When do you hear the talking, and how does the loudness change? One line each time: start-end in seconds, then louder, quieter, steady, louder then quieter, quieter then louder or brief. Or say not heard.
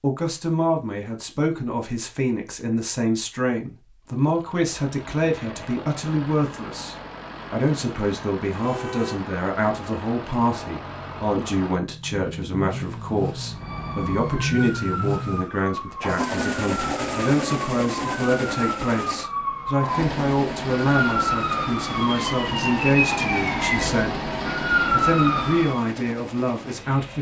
0.0-27.1 steady.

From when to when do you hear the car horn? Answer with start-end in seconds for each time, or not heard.
8.6-9.3.